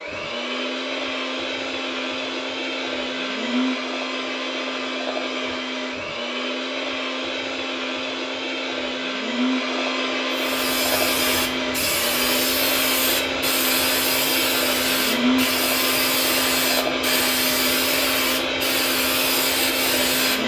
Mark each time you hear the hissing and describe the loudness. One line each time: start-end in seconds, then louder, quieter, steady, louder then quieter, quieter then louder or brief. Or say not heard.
10.3-20.4 steady.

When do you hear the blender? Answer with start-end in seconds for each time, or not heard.
0.0-20.4.